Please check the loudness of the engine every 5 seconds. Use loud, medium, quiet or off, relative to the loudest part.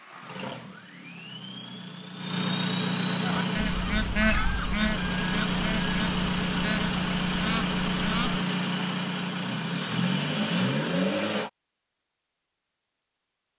medium, loud, loud.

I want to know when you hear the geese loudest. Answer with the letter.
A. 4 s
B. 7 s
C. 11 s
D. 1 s
A.